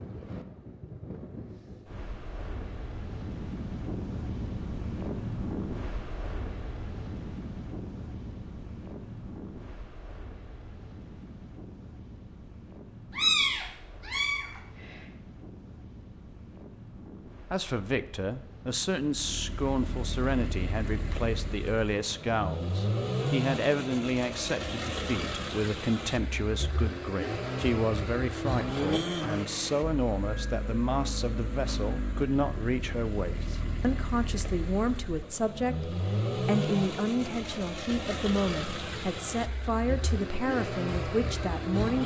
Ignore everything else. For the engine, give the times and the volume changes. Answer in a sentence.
You can hear the engine from 19.0 to 42.0 s, at a steady volume.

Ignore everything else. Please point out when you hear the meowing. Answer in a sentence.
You can hear the meowing from 13.1 to 15.0 s.